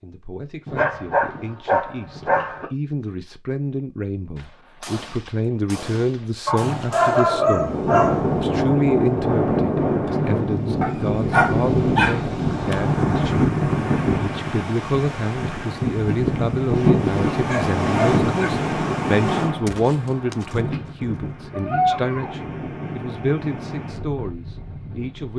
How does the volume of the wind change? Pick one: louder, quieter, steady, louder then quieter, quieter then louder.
quieter.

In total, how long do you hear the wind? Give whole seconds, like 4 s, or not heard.
18 s.